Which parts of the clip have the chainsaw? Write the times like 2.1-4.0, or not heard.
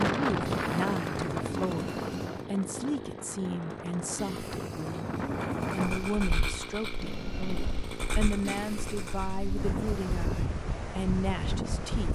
0.2-9.4.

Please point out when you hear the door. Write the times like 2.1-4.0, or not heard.
1.6-2.5, 7.0-8.0.